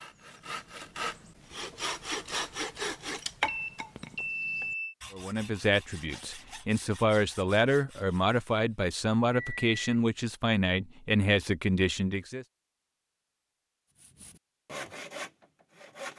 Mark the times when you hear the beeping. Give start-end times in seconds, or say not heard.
3.5-5.0, 9.3-9.8.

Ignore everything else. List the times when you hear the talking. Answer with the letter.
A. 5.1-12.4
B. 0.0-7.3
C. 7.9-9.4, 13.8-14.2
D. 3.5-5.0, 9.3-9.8
A.